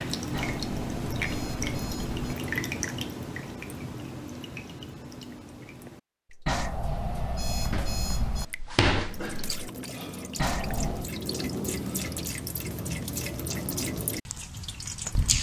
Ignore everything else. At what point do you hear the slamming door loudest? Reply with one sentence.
The volume of the slamming door peaks at 9 seconds.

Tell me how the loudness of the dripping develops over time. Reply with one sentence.
The loudness of the dripping goes down, then up.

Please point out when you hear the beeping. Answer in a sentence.
The beeping can be heard from 0.3 to 2.4 s, from 6.5 to 8.4 s and from 10.3 to 11.1 s.